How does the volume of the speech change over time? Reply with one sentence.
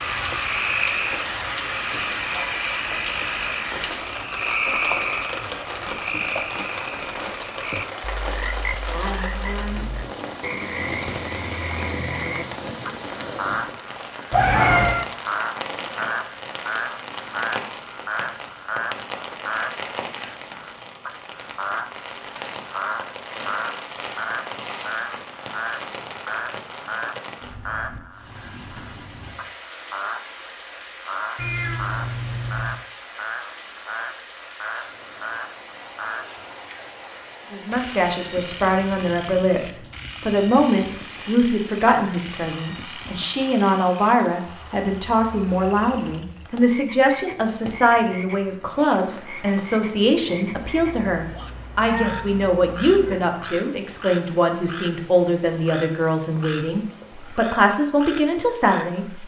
The volume of the speech stays about the same.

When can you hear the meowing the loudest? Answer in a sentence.
The volume of the meowing peaks at 15 seconds.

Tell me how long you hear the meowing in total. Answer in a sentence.
The meowing can be heard for 5 seconds in total.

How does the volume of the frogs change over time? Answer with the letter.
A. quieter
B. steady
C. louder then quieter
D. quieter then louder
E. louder
A.